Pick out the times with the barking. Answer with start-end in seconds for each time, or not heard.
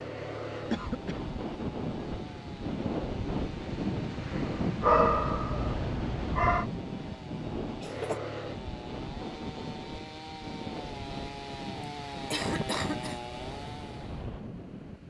4.8-6.7.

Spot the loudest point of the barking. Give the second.
5 s.